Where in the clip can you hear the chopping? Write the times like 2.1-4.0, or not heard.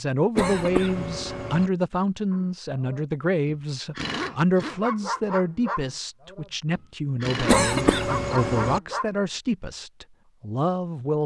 not heard.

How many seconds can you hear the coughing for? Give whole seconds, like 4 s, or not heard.
3 s.